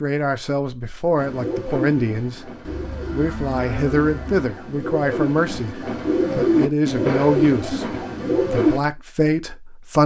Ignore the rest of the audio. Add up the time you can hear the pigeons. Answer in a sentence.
The pigeons can be heard for 8 seconds in total.